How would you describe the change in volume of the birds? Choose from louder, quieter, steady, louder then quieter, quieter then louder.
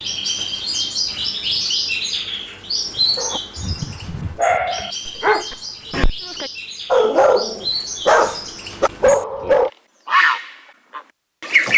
quieter then louder.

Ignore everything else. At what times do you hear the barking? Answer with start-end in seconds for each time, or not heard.
3.1-9.7.